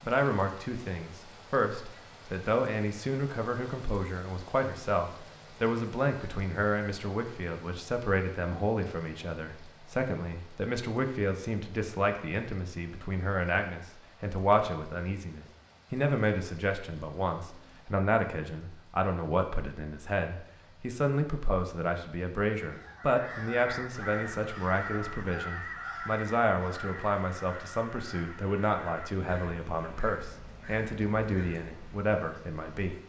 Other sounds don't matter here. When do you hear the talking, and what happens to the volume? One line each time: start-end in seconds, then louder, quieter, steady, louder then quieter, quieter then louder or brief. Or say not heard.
0.0-33.0 steady.